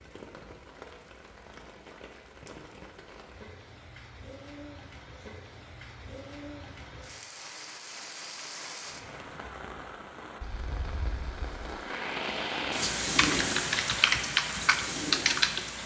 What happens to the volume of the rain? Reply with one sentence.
The loudness of the rain goes up.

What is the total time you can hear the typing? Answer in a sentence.
You can hear the typing for 3 seconds altogether.